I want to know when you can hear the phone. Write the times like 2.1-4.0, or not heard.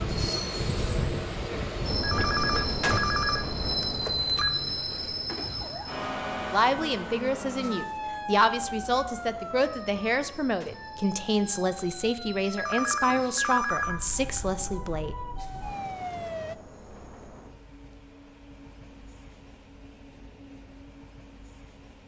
2.0-4.5, 12.6-14.5.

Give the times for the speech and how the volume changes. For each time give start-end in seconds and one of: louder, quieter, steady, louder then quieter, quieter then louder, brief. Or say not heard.
6.5-15.2 steady.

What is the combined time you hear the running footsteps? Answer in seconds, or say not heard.
not heard.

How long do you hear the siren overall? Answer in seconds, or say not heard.
11 s.